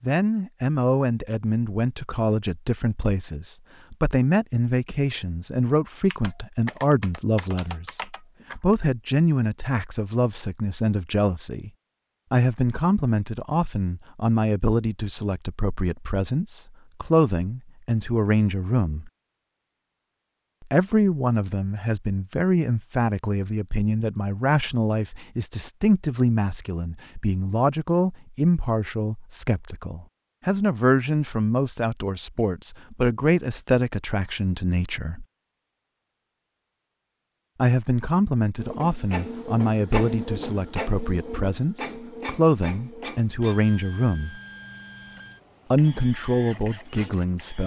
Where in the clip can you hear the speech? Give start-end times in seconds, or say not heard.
0.0-11.7, 12.3-19.1, 20.7-35.2, 37.5-44.4, 45.7-47.6.